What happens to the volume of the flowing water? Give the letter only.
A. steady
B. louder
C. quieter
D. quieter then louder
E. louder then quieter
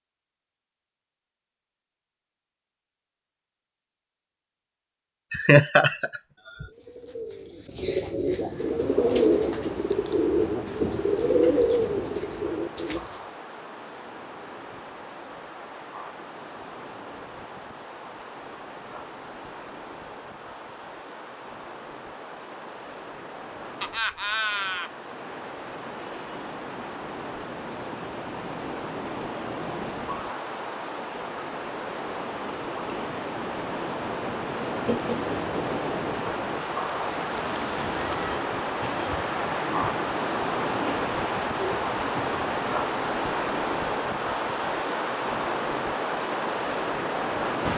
B.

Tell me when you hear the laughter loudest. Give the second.
6 s.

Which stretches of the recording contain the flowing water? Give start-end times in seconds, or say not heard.
8.4-47.7.